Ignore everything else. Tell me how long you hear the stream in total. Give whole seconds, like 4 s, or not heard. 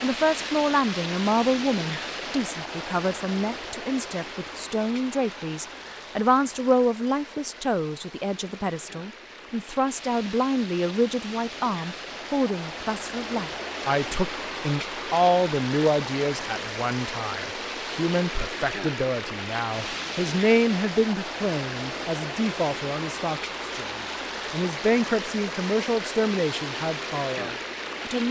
28 s.